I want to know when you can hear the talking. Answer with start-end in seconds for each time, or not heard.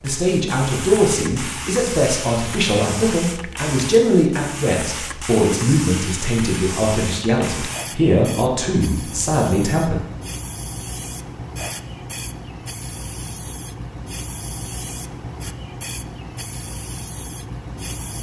0.0-10.0.